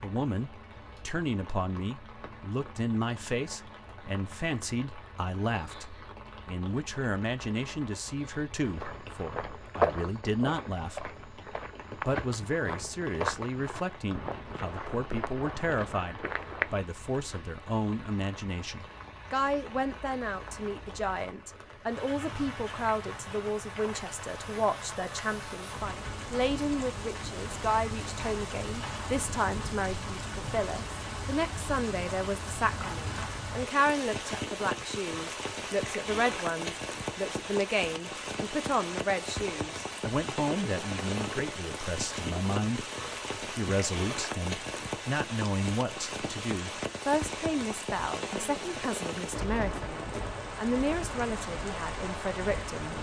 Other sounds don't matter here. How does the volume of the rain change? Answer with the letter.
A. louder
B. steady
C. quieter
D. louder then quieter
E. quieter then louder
A.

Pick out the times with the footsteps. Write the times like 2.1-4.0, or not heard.
8.6-16.8.